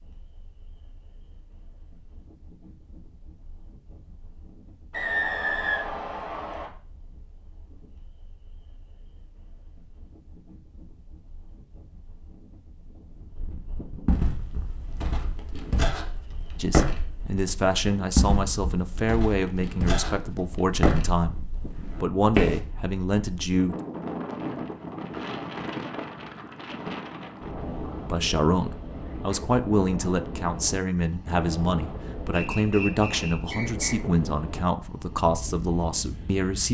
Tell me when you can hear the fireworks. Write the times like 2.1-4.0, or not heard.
not heard.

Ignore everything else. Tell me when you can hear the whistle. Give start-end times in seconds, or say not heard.
4.9-6.7, 32.3-34.0.